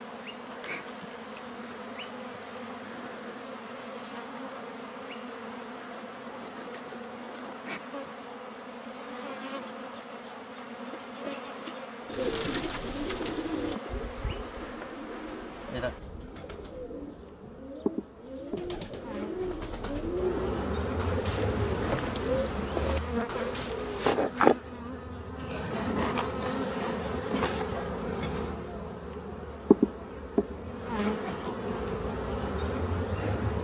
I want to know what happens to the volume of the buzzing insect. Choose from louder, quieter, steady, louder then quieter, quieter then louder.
louder.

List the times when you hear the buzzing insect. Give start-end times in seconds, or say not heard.
0.0-33.5.